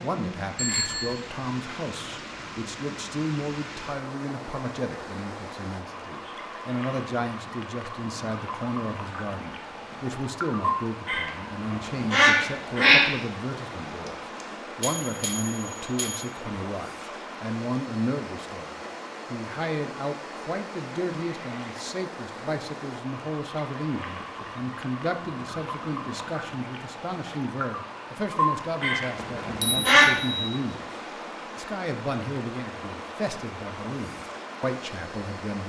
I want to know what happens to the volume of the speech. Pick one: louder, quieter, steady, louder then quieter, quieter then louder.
steady.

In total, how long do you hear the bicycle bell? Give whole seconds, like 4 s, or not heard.
4 s.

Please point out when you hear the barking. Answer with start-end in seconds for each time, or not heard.
not heard.